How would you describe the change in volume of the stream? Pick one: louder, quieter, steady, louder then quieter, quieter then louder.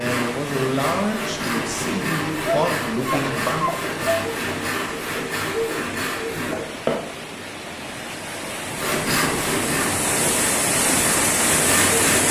louder.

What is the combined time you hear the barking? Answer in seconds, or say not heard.
2 s.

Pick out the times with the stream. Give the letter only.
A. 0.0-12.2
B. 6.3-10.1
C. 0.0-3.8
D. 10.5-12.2
A.